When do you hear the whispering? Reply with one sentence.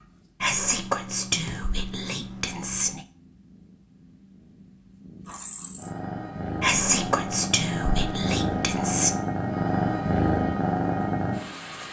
The whispering can be heard from 0.4 to 3.0 s and from 6.6 to 9.2 s.